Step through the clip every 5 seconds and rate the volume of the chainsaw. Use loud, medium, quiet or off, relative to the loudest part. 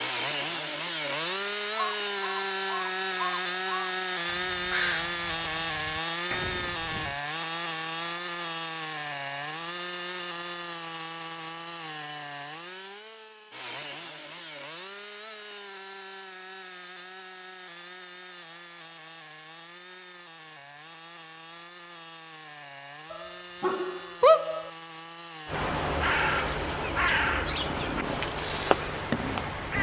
loud, loud, medium, quiet, quiet, medium.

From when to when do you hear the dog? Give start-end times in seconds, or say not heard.
23.1-24.7.